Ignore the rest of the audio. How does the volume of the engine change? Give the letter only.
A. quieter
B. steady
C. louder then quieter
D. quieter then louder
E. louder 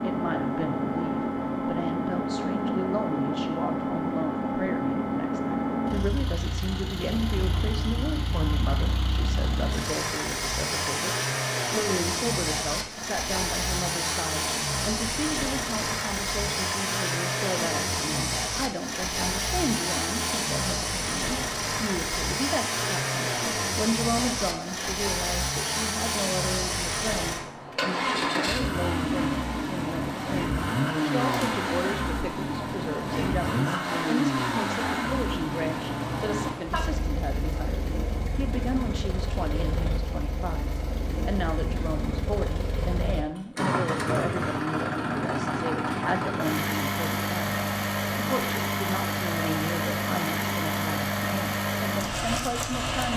B.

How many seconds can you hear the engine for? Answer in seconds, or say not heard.
53 s.